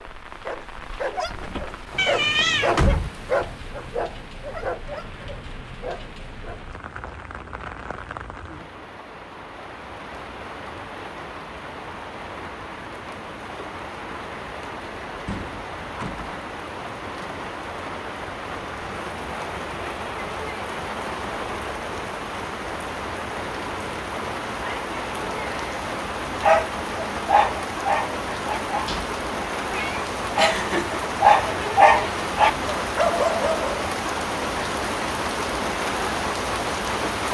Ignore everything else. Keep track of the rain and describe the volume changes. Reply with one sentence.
The volume of the rain goes up.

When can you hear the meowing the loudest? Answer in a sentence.
The volume of the meowing peaks at 2 seconds.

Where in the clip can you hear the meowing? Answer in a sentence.
You can hear the meowing from 1.9 to 3.0 s and from 29.7 to 31.1 s.